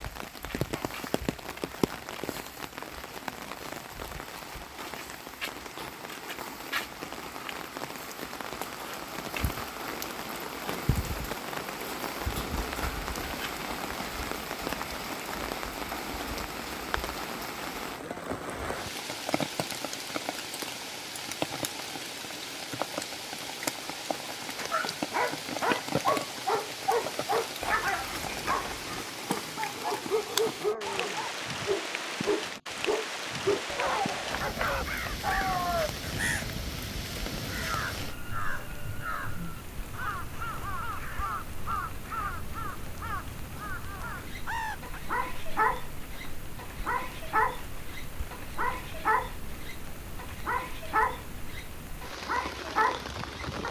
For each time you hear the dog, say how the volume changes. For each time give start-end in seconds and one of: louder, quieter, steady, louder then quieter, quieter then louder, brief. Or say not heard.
24.1-35.9 steady
44.2-53.6 steady.